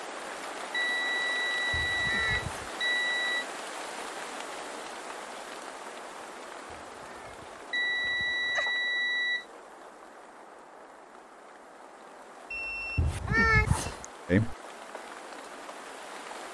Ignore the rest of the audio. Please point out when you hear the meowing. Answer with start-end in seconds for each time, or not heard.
1.7-2.8, 6.7-8.7, 12.9-14.1.